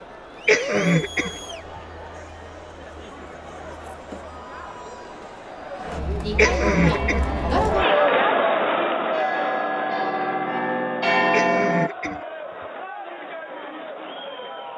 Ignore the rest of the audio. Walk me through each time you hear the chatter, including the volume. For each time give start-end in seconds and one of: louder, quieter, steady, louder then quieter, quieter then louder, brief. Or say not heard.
0.0-14.7 louder then quieter.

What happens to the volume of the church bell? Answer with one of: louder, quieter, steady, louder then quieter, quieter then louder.
louder.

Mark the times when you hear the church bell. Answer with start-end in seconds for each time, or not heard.
6.8-12.2.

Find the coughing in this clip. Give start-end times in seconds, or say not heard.
0.5-1.3, 6.3-7.3, 11.3-12.2.